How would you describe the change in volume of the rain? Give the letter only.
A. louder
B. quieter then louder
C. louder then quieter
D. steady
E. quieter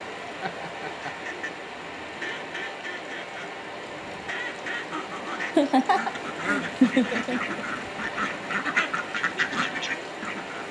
D.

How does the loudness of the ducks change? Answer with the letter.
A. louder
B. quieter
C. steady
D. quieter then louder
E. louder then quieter
A.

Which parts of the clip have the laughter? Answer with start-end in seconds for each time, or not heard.
0.4-1.3, 5.5-7.7.